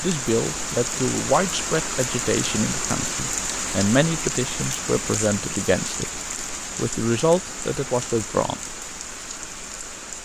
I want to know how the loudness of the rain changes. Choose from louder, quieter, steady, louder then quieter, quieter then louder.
quieter.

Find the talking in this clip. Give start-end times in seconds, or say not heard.
0.0-8.6.